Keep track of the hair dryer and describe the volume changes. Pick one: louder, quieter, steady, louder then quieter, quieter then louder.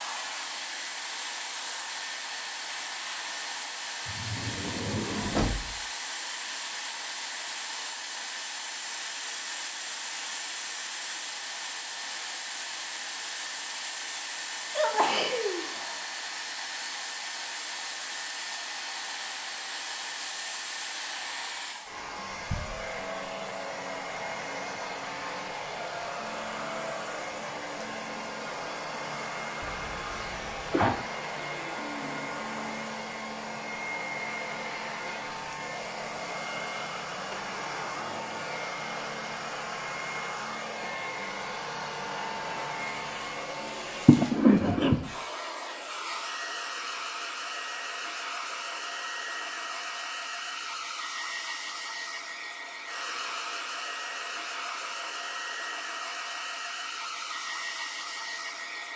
steady.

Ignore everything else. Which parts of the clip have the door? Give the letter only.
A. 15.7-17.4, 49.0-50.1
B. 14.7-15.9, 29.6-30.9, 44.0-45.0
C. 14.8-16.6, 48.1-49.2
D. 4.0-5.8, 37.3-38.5
D.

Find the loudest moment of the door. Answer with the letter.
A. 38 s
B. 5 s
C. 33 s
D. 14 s
B.